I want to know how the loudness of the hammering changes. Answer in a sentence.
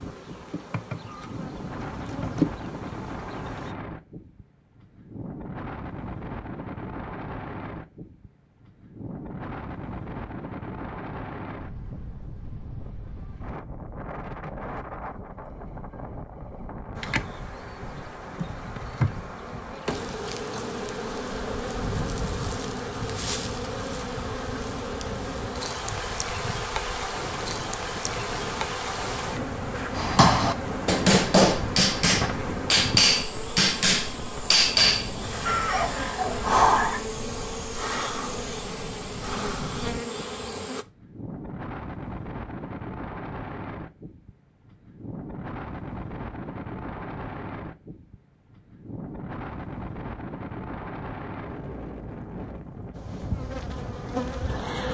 The loudness of the hammering stays about the same.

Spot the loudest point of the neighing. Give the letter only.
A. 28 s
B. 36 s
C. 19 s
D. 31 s
B.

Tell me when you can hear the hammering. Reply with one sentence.
The hammering can be heard from 29.9 to 35.1 s.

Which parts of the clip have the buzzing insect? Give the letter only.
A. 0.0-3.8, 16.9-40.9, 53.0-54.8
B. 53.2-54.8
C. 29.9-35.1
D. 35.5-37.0
A.